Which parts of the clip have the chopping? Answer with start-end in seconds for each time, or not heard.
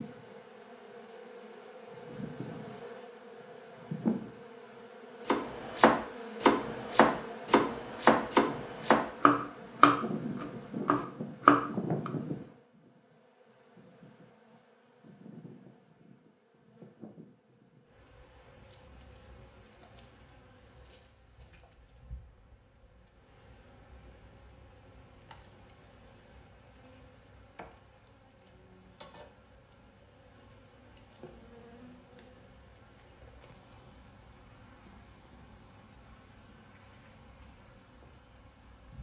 5.2-12.1.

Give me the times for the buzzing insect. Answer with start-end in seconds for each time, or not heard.
0.0-38.9.